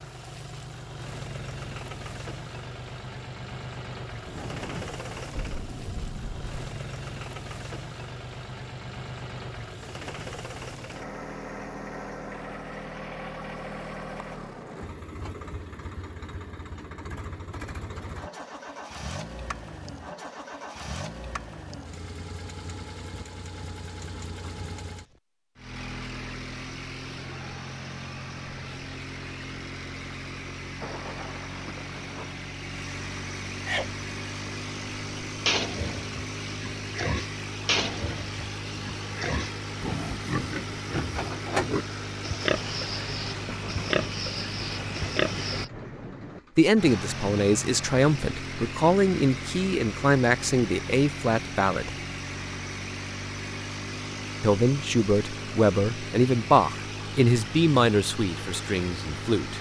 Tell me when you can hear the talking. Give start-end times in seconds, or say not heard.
46.5-52.0, 54.4-59.5.